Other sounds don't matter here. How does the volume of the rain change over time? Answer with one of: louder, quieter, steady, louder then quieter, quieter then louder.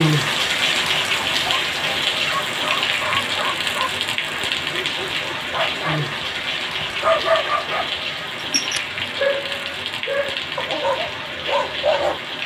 quieter.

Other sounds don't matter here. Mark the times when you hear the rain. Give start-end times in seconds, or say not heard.
0.0-12.4.